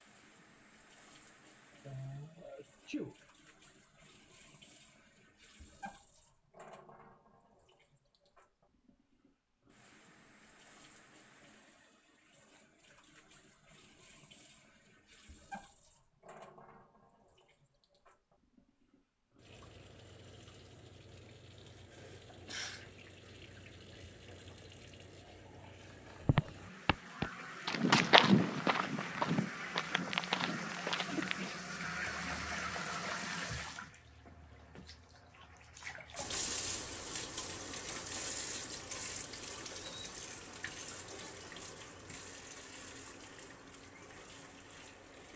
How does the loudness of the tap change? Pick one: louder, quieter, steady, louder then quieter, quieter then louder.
louder.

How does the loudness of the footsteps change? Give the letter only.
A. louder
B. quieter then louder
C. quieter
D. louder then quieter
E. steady
D.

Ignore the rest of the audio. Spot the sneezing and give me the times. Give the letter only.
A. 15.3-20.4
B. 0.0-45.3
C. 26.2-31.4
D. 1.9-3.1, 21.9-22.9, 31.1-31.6
D.